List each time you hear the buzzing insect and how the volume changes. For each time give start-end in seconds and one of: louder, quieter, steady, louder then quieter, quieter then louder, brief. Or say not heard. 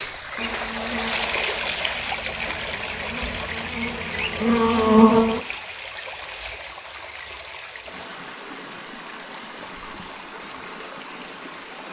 0.1-5.4 quieter then louder.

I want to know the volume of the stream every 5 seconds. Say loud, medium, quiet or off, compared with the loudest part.
loud, medium, medium.